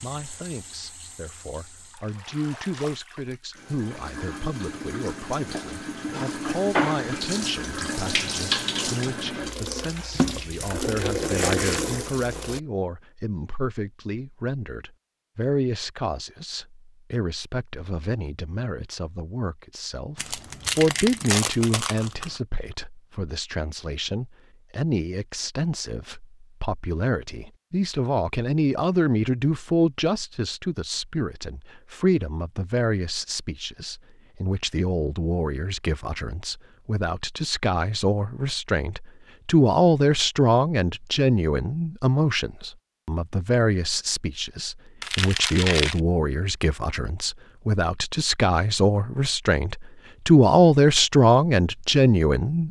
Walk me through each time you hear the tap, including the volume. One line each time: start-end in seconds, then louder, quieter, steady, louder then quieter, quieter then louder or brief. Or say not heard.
0.0-12.6 louder.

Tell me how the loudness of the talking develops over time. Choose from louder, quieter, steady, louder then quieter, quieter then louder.
louder.